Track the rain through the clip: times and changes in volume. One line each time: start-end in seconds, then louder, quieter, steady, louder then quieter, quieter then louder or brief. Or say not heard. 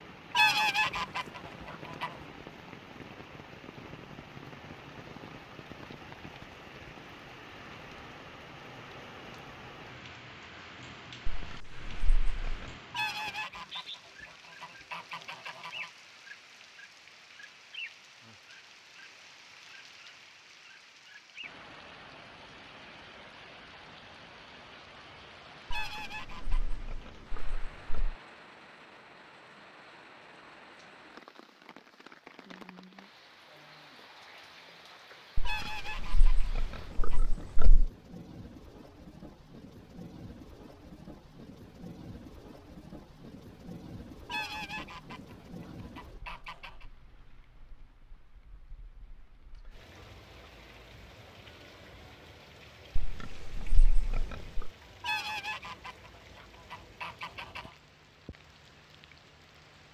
0.0-59.8 quieter.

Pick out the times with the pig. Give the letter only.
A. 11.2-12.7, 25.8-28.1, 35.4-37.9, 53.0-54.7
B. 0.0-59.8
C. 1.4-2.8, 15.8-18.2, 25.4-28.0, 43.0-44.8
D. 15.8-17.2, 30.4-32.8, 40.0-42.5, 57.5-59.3
A.